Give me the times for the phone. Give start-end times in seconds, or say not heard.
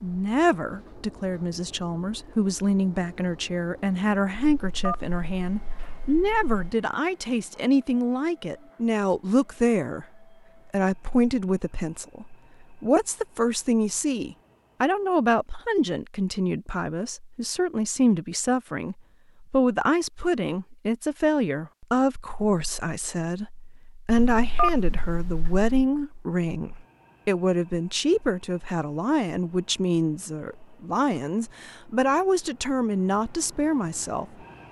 4.3-6.8, 24.1-25.9.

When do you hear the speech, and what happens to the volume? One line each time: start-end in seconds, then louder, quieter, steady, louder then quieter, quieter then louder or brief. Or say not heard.
0.0-34.4 steady.